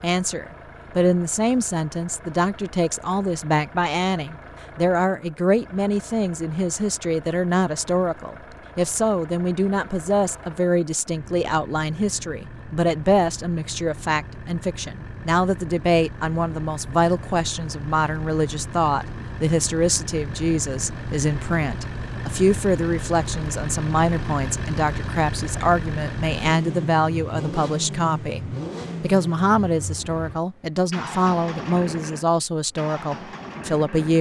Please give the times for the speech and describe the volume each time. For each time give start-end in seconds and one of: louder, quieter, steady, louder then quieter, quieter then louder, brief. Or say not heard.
0.0-34.1 steady.